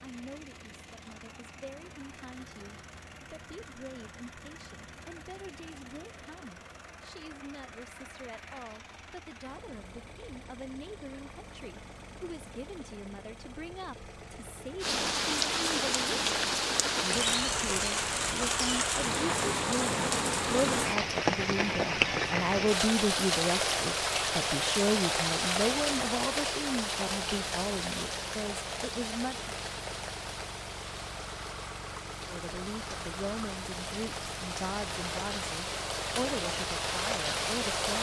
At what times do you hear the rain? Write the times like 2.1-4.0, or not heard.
14.8-37.9.